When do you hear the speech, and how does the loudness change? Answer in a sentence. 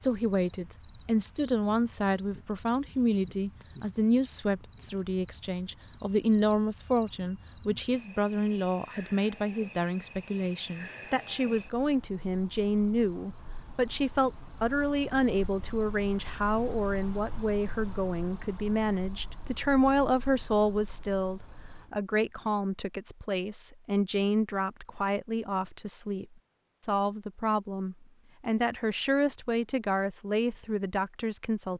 The speech can be heard from 0.0 to 31.7 s, at a steady volume.